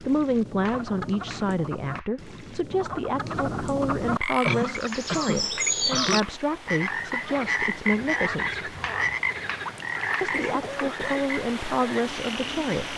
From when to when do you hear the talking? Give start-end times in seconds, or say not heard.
0.0-8.7, 10.2-12.9.